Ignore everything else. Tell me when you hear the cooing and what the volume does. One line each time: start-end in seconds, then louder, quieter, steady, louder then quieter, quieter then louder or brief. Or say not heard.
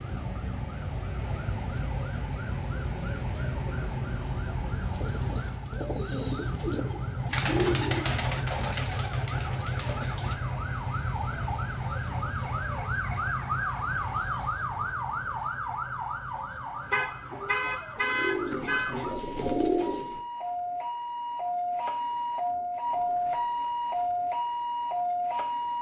4.9-10.3 louder then quieter
17.3-20.2 brief.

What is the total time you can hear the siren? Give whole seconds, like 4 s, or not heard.
26 s.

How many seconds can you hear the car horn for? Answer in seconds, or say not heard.
2 s.